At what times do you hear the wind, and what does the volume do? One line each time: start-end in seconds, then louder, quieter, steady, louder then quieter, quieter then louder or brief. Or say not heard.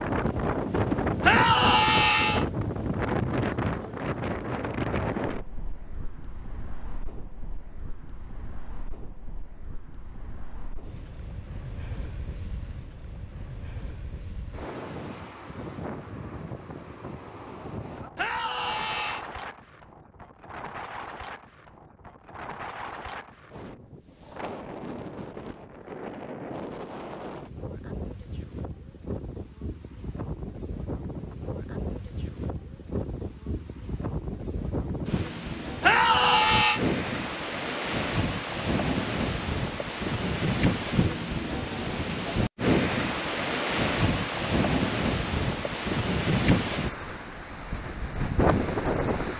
0.0-49.3 quieter then louder.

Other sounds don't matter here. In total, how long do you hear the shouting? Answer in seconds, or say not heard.
3 s.